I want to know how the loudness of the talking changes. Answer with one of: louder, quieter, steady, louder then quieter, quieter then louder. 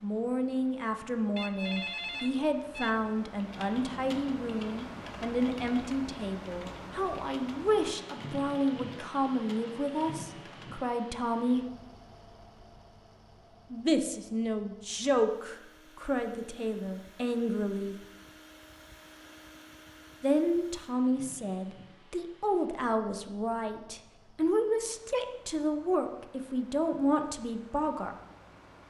steady.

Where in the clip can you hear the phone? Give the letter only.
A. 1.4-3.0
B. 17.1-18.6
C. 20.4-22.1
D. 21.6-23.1
A.